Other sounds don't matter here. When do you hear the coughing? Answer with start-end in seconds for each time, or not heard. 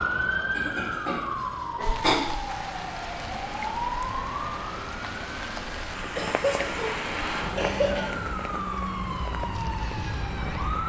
0.6-2.2, 6.2-8.1.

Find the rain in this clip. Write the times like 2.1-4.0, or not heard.
1.8-10.8.